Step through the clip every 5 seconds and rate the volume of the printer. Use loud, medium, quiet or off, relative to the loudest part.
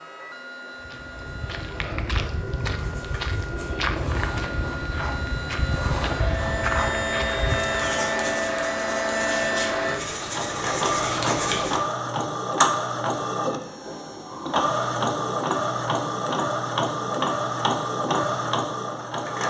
quiet, loud, loud, loud.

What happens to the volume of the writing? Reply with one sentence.
The loudness of the writing goes up.